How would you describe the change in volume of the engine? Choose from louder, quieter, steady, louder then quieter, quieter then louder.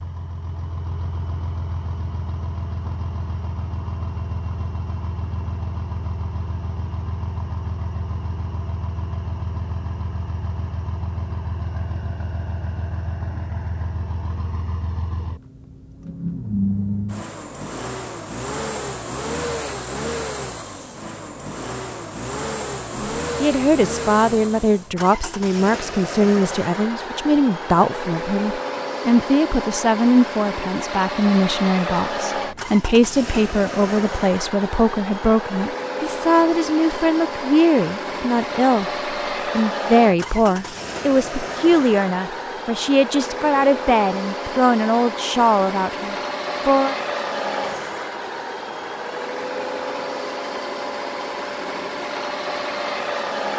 louder.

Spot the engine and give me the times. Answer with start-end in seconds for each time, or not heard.
0.0-53.5.